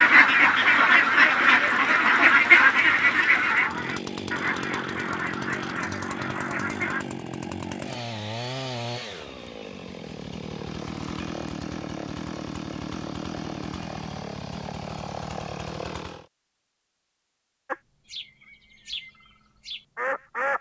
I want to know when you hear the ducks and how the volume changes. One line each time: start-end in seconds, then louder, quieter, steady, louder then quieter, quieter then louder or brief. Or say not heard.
0.0-7.0 quieter
17.6-20.5 brief.